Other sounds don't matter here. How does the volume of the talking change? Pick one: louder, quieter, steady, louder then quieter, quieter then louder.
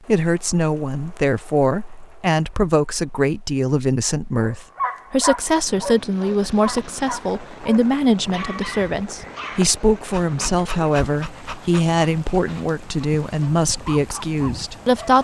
steady.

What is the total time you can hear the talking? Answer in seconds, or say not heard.
15 s.